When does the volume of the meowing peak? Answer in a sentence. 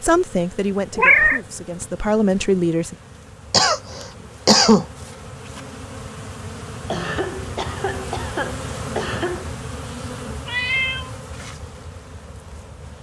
The loudest moment of the meowing is at 1 second.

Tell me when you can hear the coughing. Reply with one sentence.
The coughing can be heard from 3.5 to 4.8 s and from 6.9 to 9.5 s.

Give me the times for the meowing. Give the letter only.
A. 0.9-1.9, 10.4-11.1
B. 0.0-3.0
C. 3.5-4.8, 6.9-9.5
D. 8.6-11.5
A.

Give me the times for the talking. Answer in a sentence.
You can hear the talking from 0.0 to 3.0 s.